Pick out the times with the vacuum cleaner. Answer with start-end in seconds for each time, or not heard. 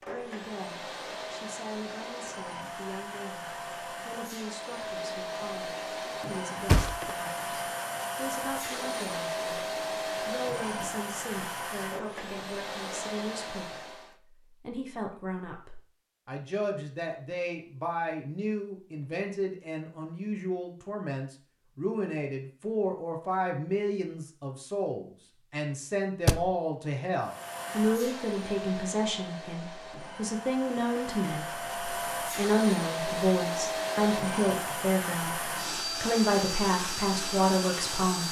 0.0-14.2, 27.2-38.2.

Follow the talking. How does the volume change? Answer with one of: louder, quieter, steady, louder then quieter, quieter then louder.
louder.